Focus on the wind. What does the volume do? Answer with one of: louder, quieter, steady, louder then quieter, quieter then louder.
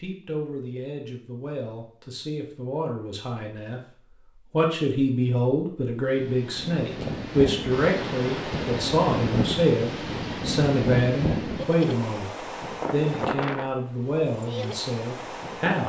quieter.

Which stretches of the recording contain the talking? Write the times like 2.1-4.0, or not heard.
0.0-15.8.